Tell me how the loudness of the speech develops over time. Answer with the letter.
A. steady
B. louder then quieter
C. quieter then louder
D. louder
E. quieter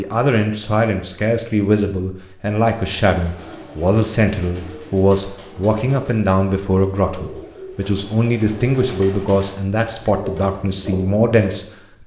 A.